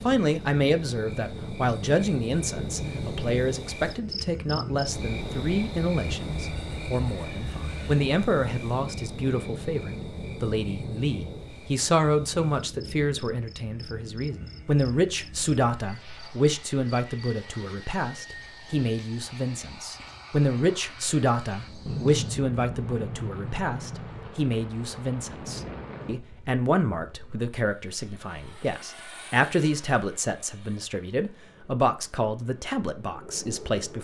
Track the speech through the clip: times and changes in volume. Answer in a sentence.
The speech can be heard from 0.0 to 33.9 s, at a steady volume.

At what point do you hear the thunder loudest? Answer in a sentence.
The loudest moment of the thunder is at 22 seconds.